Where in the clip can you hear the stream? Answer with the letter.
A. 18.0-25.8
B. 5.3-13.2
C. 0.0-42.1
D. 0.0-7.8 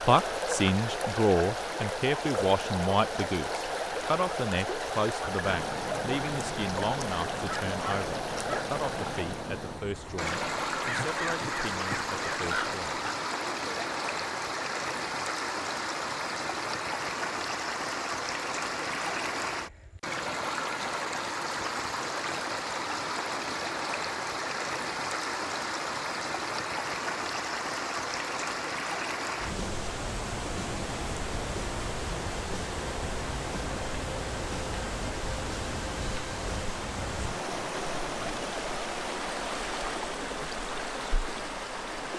C.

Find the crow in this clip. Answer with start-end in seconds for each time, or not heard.
5.3-13.2.